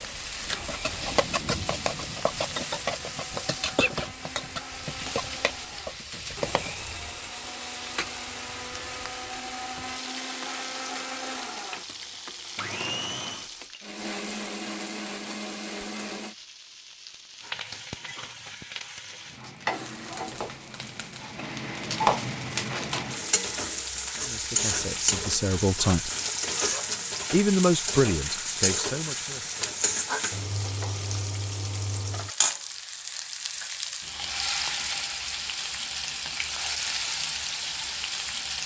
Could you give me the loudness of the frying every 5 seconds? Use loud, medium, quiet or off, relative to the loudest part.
loud, medium, medium, medium, loud, loud, loud, loud.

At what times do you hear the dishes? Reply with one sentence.
You can't hear the dishes here.